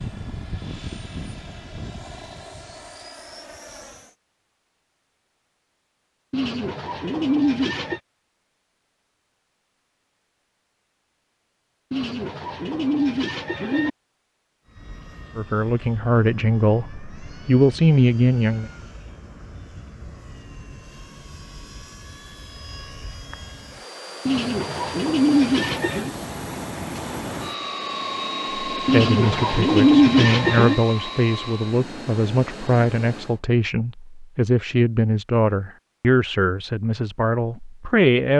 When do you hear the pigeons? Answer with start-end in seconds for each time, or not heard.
6.3-8.0, 11.9-13.9, 24.2-26.1, 28.9-30.8.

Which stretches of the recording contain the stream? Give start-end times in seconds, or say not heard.
not heard.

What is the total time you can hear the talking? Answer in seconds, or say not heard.
13 s.